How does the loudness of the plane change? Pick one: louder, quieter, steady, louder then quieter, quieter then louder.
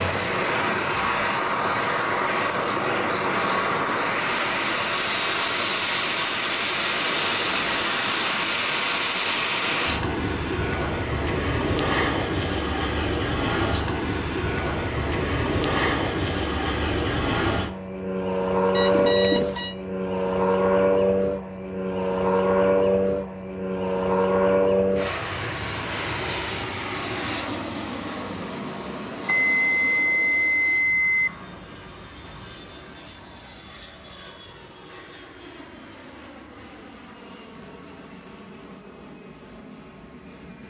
quieter.